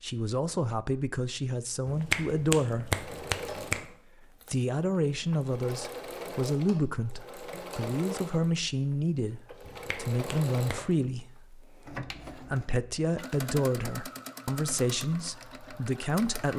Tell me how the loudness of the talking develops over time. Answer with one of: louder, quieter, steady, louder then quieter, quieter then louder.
steady.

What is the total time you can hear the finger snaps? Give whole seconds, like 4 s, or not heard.
3 s.